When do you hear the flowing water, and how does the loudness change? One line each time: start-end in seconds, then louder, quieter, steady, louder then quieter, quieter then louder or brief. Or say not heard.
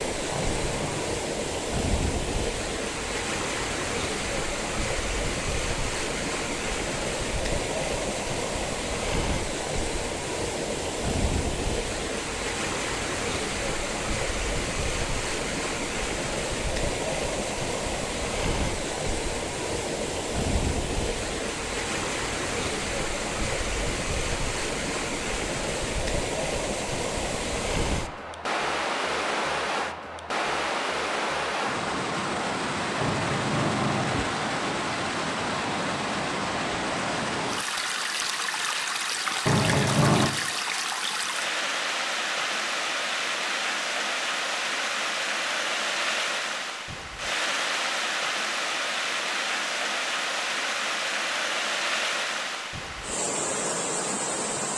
0.0-54.7 steady.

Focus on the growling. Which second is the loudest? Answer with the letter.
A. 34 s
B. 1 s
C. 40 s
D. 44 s
C.